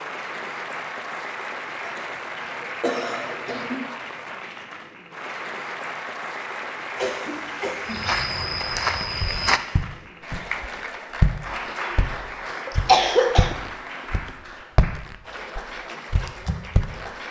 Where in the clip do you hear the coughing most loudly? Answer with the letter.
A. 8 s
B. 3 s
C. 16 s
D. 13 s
D.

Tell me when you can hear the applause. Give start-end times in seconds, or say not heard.
0.0-17.2.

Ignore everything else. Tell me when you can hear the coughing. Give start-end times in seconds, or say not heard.
1.8-3.8, 7.0-8.1, 12.7-13.6.